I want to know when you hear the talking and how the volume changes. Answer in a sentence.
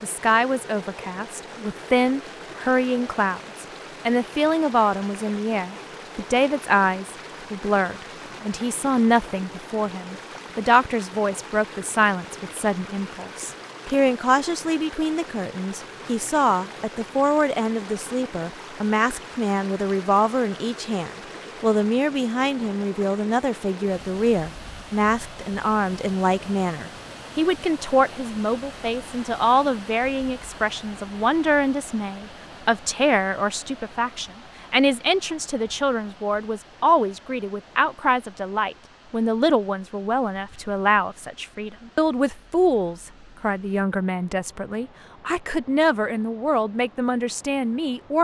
You can hear the talking from 0.0 to 48.1 s, at a steady volume.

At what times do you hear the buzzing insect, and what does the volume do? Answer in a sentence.
The buzzing insect can't be heard in this clip.